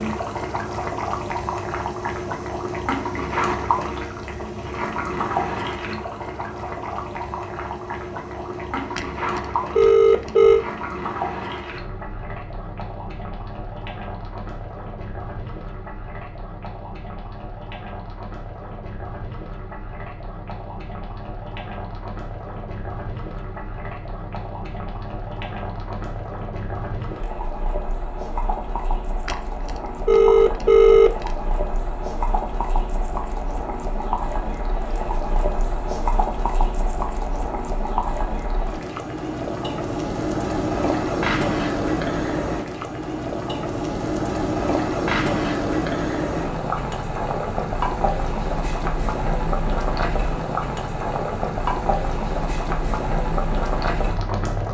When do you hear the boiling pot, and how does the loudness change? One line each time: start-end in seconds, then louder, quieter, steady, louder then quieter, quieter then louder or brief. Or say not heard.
0.0-54.7 quieter then louder.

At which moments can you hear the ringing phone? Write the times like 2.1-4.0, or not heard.
8.9-10.7, 29.2-31.3.